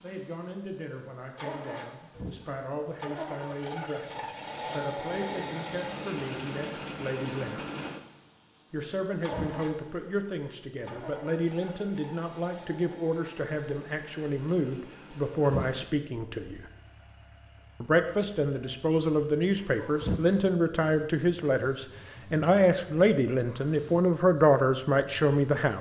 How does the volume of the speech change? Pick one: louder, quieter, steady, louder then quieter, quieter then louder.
louder.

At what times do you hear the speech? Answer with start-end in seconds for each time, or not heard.
0.0-7.7, 8.7-16.6, 17.8-25.7.